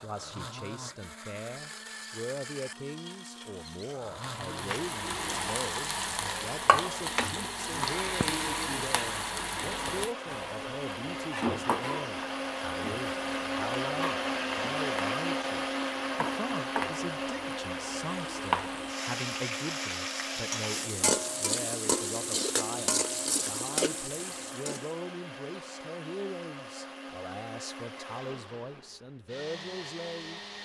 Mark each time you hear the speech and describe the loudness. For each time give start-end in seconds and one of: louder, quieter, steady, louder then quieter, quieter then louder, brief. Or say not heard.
0.0-30.4 steady.